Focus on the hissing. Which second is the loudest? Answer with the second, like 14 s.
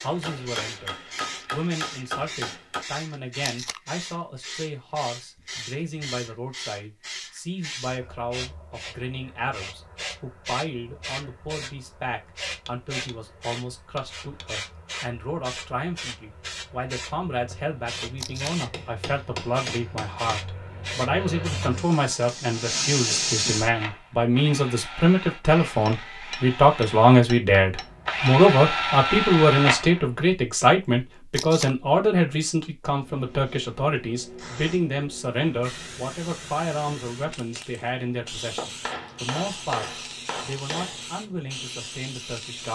23 s.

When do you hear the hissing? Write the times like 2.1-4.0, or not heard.
0.0-23.7, 33.0-42.7.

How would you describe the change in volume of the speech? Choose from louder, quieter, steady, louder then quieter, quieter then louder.
louder then quieter.